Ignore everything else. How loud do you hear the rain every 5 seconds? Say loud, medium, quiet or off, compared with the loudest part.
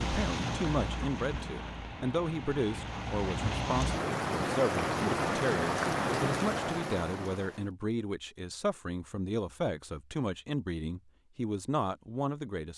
loud, loud, off.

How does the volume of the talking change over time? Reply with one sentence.
The volume of the talking stays about the same.